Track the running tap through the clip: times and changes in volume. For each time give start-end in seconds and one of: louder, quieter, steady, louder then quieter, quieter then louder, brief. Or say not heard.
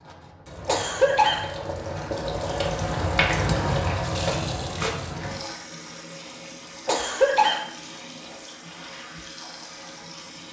0.0-10.4 louder then quieter.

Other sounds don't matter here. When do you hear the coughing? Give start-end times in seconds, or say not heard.
0.7-1.5, 6.8-7.7.